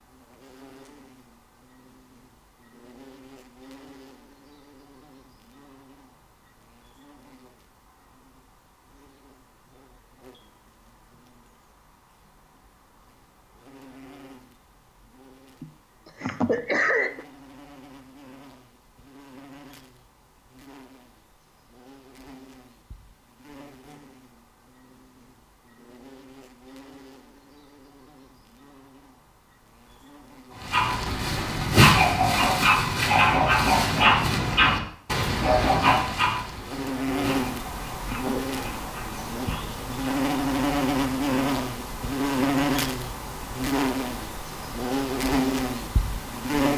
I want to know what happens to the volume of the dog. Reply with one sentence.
The loudness of the dog goes down.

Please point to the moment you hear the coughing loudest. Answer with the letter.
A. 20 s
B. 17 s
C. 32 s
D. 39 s
B.